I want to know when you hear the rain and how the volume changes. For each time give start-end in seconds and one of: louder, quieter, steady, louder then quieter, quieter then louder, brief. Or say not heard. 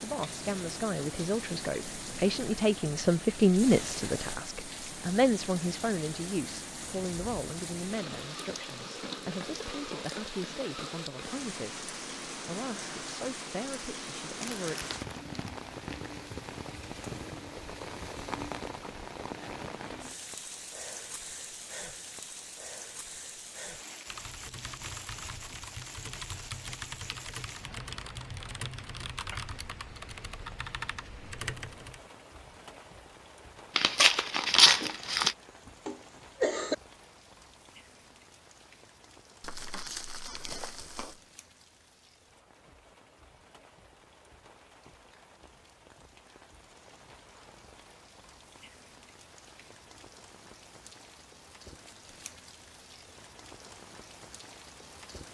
0.0-55.2 quieter.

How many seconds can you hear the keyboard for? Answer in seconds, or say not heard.
8 s.